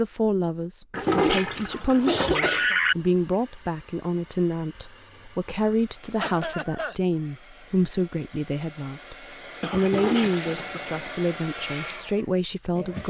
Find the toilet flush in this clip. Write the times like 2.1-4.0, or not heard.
0.9-3.0, 9.8-11.0.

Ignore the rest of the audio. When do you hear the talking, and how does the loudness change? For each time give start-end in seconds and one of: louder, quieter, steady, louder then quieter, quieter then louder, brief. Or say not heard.
0.0-13.0 steady.